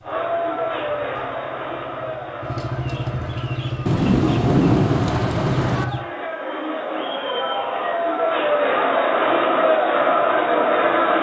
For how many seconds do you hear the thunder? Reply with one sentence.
You can hear the thunder for 2 seconds altogether.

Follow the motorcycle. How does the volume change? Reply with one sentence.
The loudness of the motorcycle goes up.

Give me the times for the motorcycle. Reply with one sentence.
You can hear the motorcycle from 0.0 to 6.0 s.